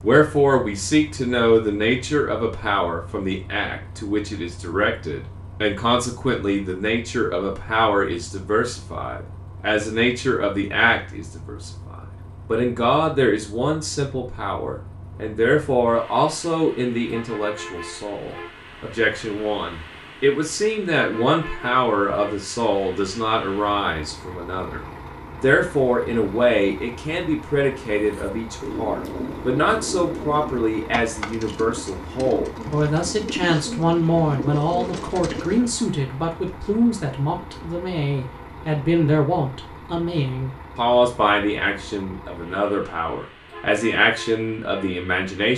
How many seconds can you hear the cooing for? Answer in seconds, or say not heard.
8 s.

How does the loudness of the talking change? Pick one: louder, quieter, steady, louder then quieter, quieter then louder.
steady.